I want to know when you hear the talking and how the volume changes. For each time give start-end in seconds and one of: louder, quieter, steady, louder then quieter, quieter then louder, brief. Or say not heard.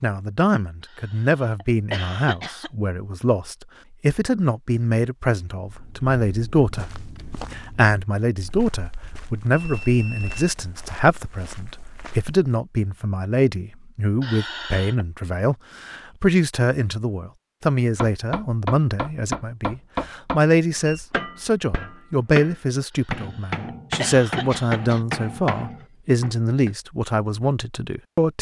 0.0-28.3 steady.